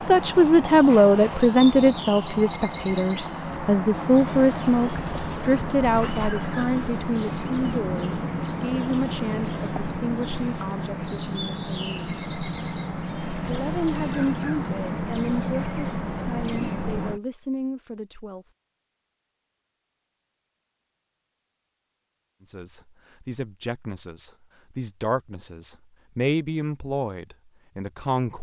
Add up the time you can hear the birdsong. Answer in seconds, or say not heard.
17 s.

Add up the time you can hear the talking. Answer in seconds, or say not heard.
23 s.